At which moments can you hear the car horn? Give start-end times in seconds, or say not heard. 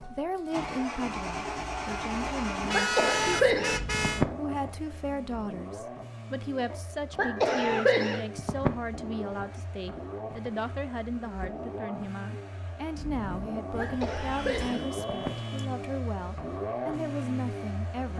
2.6-4.2, 7.3-7.8, 13.8-15.8.